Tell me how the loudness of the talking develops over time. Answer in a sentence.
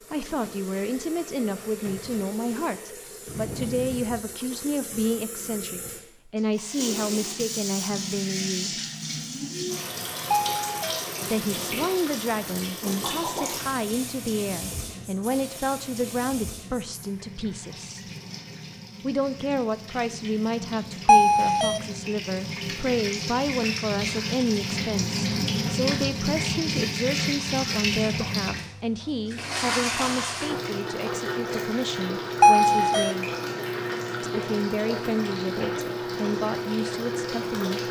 The volume of the talking stays about the same.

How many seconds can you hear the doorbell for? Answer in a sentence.
The doorbell can be heard for 2 seconds in total.